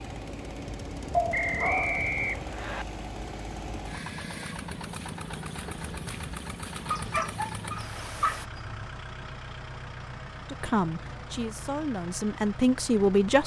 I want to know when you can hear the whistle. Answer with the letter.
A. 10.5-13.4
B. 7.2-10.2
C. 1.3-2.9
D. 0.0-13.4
C.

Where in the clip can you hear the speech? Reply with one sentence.
You can hear the speech from 10.5 to 13.4 s.